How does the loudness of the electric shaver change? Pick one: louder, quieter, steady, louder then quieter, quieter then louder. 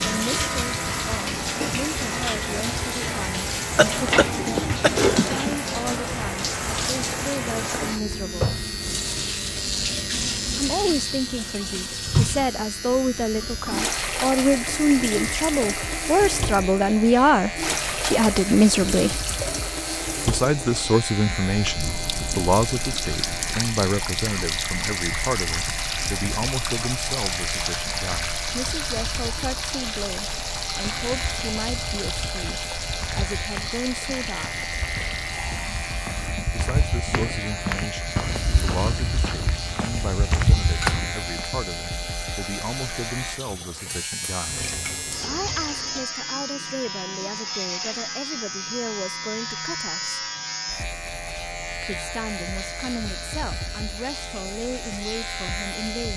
steady.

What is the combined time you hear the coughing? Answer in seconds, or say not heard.
2 s.